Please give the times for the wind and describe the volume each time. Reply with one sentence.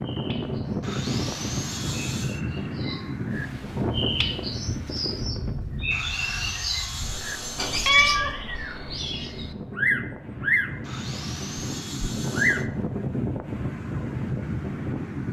You can hear the wind from 0.0 to 15.2 s, getting quieter then louder.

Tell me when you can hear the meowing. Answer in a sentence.
You can hear the meowing from 7.5 to 8.3 s.